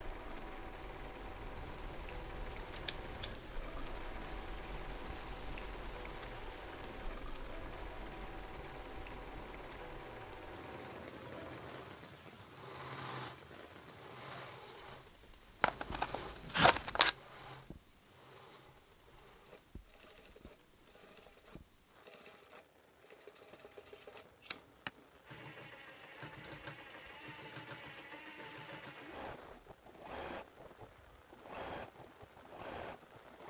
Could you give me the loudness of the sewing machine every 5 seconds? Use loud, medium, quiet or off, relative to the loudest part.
loud, loud, loud, medium, medium, loud, loud.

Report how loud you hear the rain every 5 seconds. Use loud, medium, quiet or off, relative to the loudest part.
loud, loud, loud, medium, quiet, medium, medium.